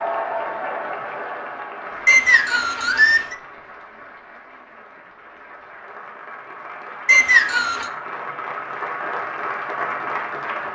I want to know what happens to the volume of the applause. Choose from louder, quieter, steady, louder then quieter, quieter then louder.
quieter then louder.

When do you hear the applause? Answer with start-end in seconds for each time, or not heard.
0.0-10.7.